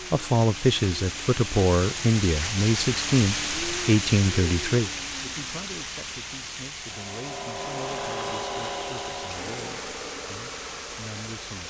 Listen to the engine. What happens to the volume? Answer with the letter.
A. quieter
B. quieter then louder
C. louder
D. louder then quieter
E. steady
A.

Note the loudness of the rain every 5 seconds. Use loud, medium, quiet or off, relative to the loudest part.
loud, medium, medium.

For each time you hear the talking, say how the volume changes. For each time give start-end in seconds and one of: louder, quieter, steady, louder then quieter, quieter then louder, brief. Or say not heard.
0.1-11.6 quieter.